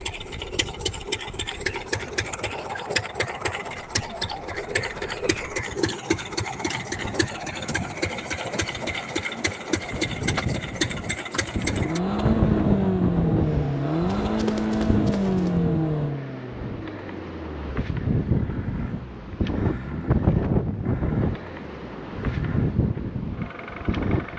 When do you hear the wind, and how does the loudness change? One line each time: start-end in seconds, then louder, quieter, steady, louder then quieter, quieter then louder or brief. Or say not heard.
0.1-24.3 louder.